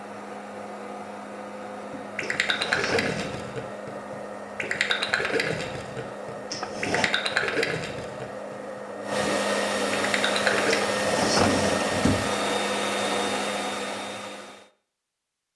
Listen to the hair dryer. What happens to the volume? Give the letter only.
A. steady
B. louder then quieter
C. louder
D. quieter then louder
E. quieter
C.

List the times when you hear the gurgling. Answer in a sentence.
You can hear the gurgling from 1.8 to 10.8 s.